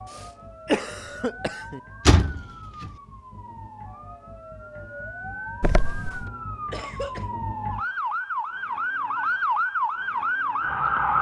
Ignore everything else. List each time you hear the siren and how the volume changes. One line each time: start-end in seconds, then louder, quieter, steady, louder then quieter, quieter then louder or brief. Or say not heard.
0.0-11.1 louder.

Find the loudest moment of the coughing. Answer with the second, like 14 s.
1 s.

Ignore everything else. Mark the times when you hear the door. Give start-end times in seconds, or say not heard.
2.0-2.9, 5.6-6.2.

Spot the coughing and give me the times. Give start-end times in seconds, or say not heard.
0.1-1.8, 6.7-7.2.